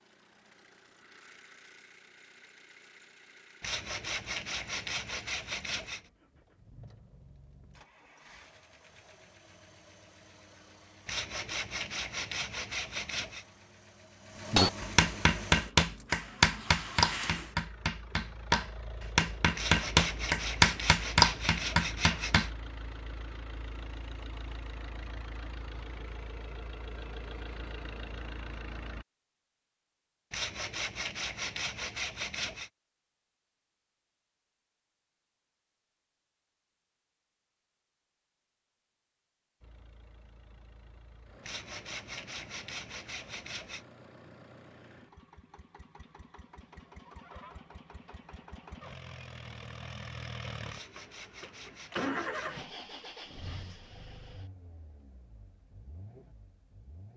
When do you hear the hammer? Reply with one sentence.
The hammer can be heard from 14.5 to 22.5 s.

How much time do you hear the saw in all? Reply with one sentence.
You can hear the saw for 15 seconds altogether.